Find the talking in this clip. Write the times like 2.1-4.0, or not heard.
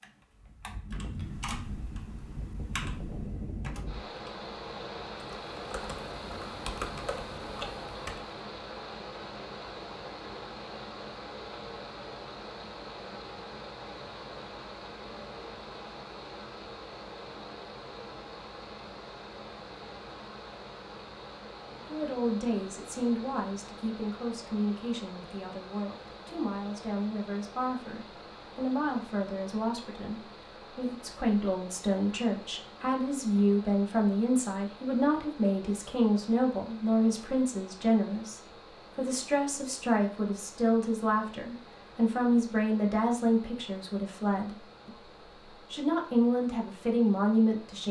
21.9-47.8.